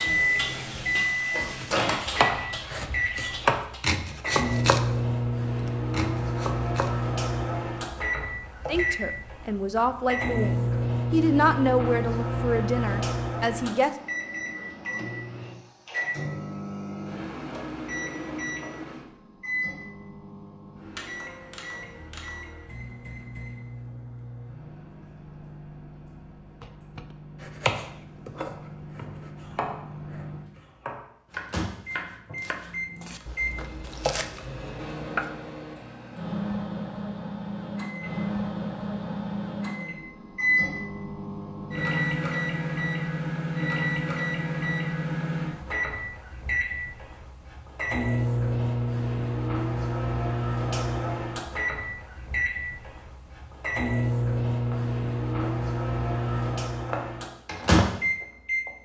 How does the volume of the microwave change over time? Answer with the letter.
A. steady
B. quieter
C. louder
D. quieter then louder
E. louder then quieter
D.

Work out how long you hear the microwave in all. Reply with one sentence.
The microwave can be heard for 59 seconds in total.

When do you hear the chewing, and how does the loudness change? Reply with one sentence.
You can't hear the chewing here.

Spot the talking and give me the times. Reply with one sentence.
The talking can be heard from 8.7 to 13.9 s.